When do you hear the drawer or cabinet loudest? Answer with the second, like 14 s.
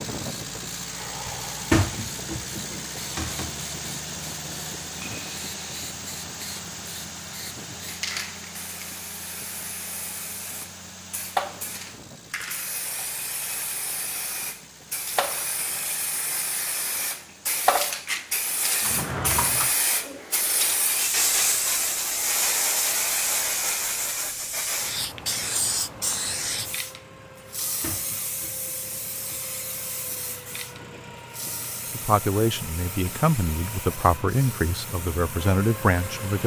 2 s.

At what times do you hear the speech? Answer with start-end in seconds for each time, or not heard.
31.9-36.4.